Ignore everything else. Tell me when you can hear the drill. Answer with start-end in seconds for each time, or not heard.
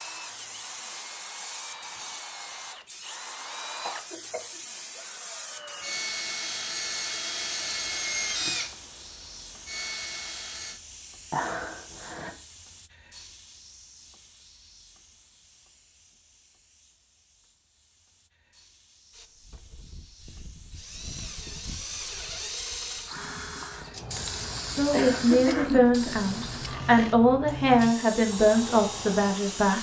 0.0-10.8, 19.1-29.7.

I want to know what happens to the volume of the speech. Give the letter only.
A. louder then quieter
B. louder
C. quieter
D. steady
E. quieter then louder
E.